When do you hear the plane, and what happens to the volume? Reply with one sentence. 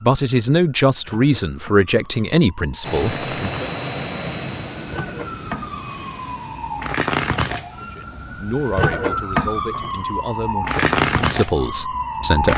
You can hear the plane from 2.8 to 10.2 s, getting quieter.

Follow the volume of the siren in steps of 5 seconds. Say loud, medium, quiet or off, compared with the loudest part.
quiet, loud, loud.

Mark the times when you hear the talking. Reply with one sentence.
The talking can be heard from 0.0 to 3.7 s and from 7.8 to 12.5 s.